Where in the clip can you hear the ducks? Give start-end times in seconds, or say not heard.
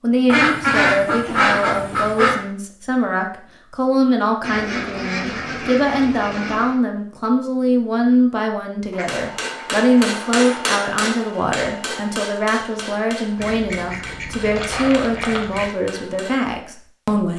0.2-2.4, 4.4-6.8, 8.9-10.6, 13.3-15.7.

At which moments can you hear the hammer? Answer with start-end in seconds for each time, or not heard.
9.1-16.4.